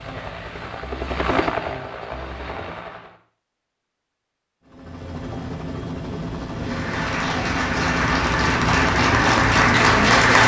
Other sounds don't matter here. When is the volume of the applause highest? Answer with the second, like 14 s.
10 s.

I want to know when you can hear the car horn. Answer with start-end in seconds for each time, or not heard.
not heard.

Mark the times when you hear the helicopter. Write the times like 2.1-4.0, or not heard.
0.0-3.1, 4.7-10.4.